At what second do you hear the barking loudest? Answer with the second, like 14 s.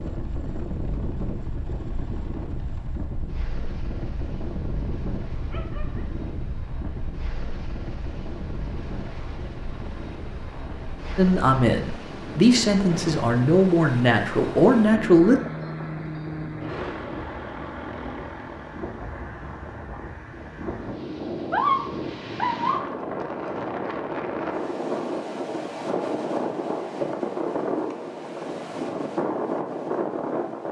22 s.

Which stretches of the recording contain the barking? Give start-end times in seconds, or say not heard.
5.5-6.1, 21.5-23.0.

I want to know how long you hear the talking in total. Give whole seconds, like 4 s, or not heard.
4 s.